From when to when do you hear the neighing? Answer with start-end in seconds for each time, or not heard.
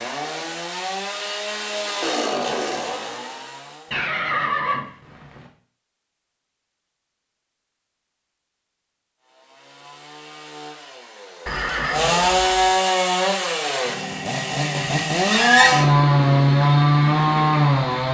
3.9-5.5, 11.4-12.8.